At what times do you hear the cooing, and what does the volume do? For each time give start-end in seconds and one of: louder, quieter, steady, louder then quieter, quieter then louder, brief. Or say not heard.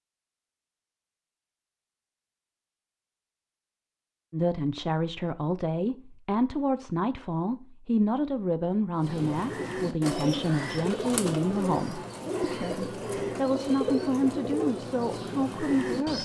8.9-16.2 steady.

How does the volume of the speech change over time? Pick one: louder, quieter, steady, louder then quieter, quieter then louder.
steady.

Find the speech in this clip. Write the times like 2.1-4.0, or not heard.
4.3-16.2.